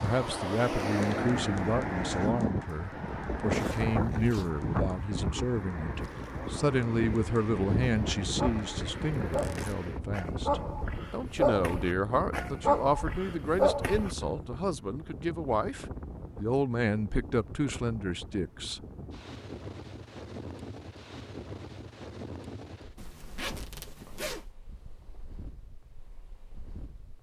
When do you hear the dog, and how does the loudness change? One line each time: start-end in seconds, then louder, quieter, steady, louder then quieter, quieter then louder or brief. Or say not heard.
8.1-14.2 louder.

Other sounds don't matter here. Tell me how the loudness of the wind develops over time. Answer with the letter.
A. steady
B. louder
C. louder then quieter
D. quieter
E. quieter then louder
D.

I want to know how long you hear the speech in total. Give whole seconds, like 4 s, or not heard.
19 s.